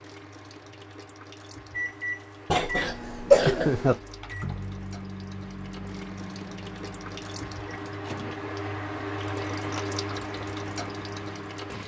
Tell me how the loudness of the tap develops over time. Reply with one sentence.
The loudness of the tap goes up.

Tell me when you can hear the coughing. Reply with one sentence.
The coughing can be heard from 2.5 to 4.0 s.